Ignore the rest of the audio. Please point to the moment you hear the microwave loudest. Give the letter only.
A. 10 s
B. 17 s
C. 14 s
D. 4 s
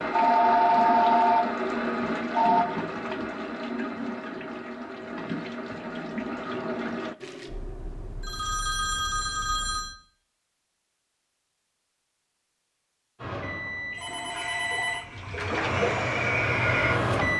B.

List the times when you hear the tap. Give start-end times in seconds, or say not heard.
0.0-7.2, 14.1-17.3.